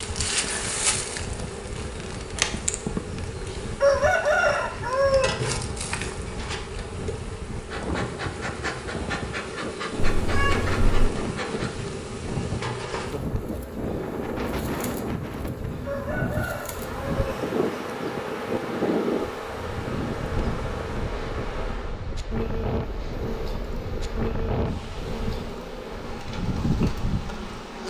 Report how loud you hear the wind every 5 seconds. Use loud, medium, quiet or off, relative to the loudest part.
medium, medium, loud, loud, loud, loud.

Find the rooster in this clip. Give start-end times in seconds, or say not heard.
3.8-5.4, 15.8-17.4.